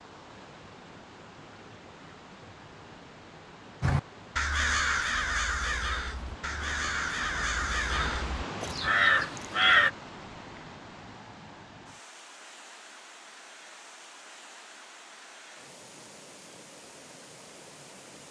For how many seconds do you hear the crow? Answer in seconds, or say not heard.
6 s.